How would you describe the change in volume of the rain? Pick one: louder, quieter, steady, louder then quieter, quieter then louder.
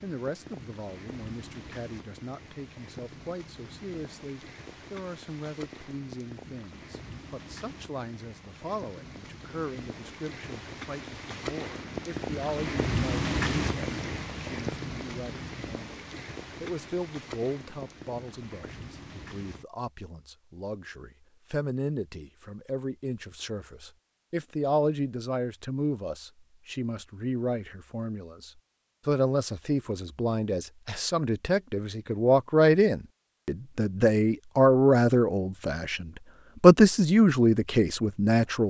louder then quieter.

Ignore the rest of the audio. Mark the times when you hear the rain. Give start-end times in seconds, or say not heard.
0.0-19.6.